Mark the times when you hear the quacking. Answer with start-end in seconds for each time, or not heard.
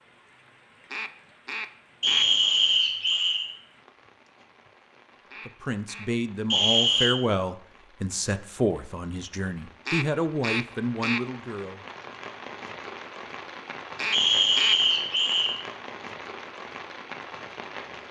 0.9-2.2, 5.3-6.0, 9.8-11.2, 13.9-14.8.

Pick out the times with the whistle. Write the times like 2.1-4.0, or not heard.
2.0-3.5, 6.5-7.1, 14.1-15.6.